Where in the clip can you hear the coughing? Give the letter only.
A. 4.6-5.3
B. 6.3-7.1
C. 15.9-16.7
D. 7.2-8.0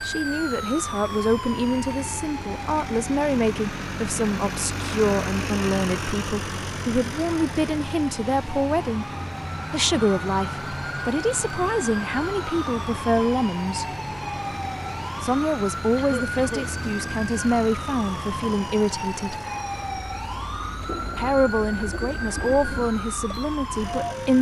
C.